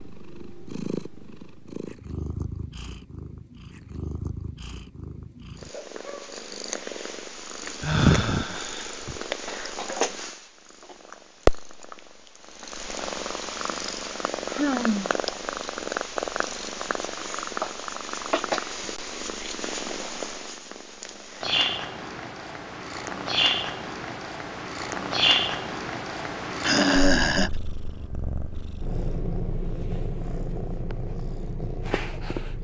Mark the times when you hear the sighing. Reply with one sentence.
You can hear the sighing from 7.8 to 9.2 s, from 14.4 to 15.2 s and from 26.6 to 27.5 s.